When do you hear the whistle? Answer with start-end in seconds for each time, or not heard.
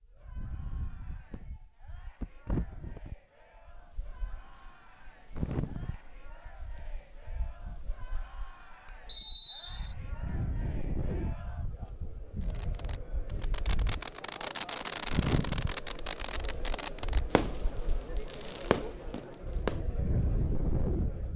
9.1-9.9.